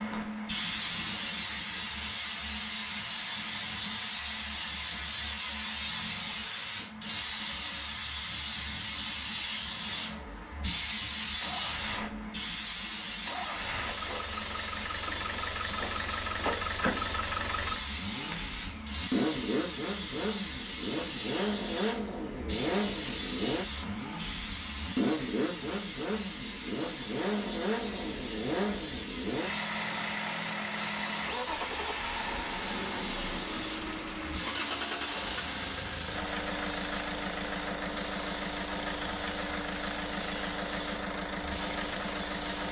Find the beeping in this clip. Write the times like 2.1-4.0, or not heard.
not heard.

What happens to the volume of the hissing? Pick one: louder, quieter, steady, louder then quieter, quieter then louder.
quieter.